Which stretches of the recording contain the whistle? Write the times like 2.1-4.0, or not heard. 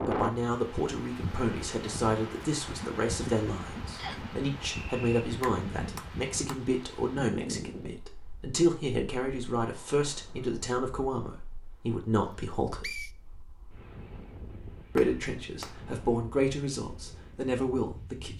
4.0-5.2, 12.3-13.1.